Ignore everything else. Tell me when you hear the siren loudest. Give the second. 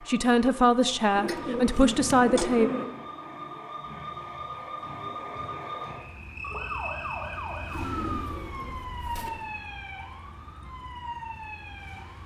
7 s.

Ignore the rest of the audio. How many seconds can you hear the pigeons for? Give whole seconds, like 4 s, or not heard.
3 s.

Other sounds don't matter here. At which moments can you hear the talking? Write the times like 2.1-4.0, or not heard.
0.1-2.7.